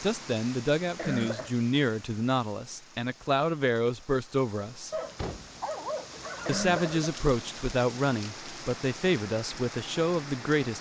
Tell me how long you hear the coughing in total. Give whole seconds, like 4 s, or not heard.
2 s.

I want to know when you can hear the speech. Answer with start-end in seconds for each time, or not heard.
0.0-4.9, 6.5-10.7.